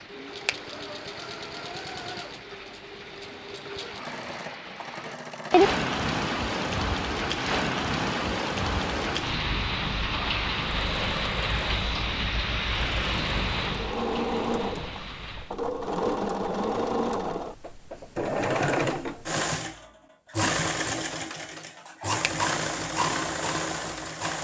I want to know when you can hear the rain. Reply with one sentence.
You can hear the rain from 0.0 to 15.6 s.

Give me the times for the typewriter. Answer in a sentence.
You can't hear the typewriter here.